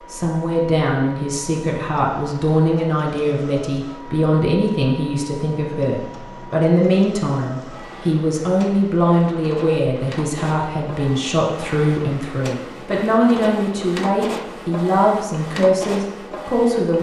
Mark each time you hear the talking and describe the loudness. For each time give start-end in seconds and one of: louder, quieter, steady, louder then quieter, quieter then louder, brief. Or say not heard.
0.1-16.9 steady.